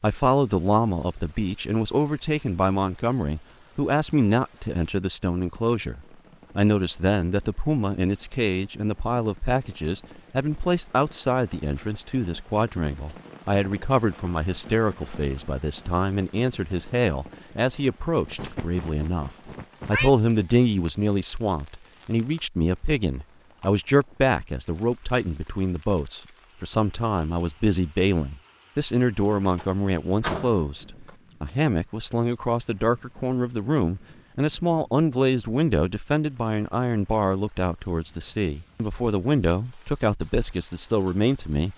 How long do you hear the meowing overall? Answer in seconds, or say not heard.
2 s.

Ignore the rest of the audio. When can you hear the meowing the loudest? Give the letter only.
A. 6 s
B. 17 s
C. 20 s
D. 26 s
C.